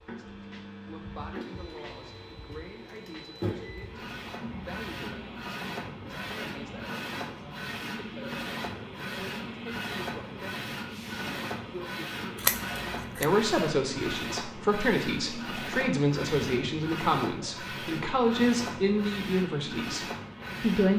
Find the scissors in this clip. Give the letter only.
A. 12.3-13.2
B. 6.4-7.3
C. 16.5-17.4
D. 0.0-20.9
A.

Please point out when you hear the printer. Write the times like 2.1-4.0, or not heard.
0.0-20.9.